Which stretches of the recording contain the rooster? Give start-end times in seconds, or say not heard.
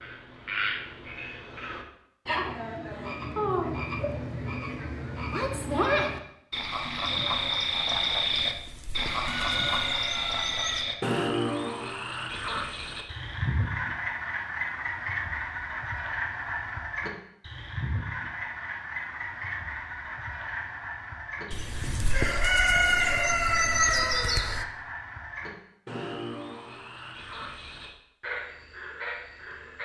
8.4-10.8, 21.5-24.6.